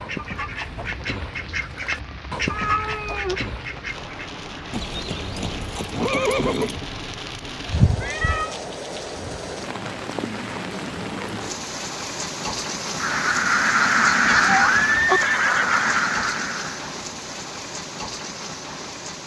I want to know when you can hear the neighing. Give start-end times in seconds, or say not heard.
4.7-6.8, 14.6-16.1.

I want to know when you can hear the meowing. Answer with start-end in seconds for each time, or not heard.
2.5-4.0, 7.7-8.6, 14.2-15.2.